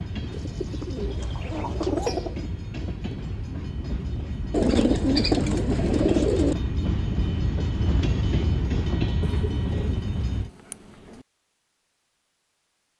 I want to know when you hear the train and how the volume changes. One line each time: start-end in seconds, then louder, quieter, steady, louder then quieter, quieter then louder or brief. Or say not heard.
0.0-10.5 louder.